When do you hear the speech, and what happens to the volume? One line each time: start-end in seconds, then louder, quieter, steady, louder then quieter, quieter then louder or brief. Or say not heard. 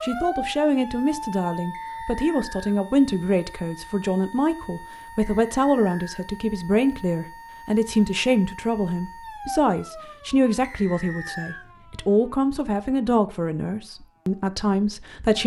0.0-15.4 steady.